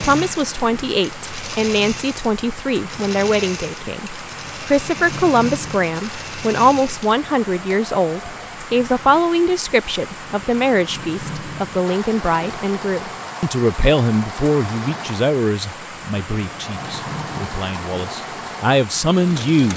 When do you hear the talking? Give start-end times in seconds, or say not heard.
0.0-19.7.